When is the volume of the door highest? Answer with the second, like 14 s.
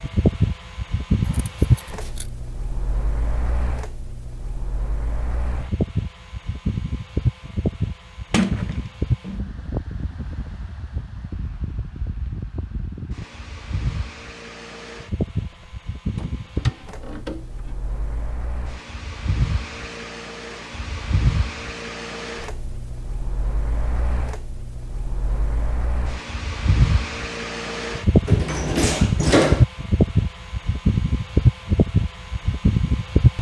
29 s.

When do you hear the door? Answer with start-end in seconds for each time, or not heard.
8.3-9.5, 15.5-17.8, 28.2-29.6.